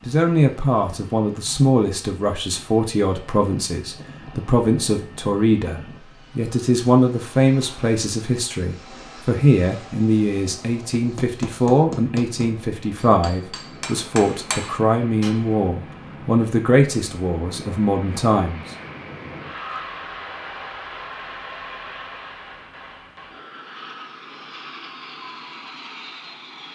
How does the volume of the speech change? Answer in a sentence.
The volume of the speech stays about the same.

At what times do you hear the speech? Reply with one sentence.
The speech can be heard from 0.0 to 18.6 s.